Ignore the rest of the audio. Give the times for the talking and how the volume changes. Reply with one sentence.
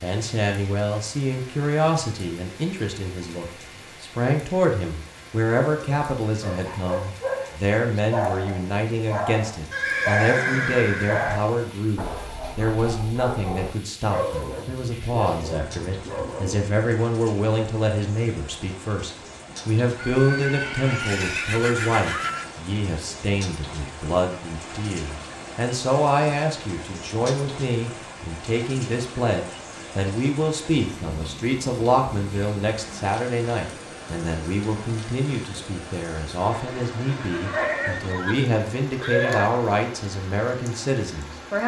The talking can be heard from 0.0 to 41.6 s, at a steady volume.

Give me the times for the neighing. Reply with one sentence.
The neighing can be heard from 9.7 to 11.4 s, from 19.9 to 22.5 s and from 37.0 to 39.5 s.